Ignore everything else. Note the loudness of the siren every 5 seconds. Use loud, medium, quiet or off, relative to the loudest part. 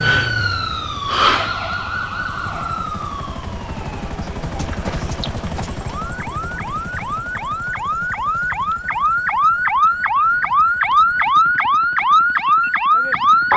medium, medium, loud.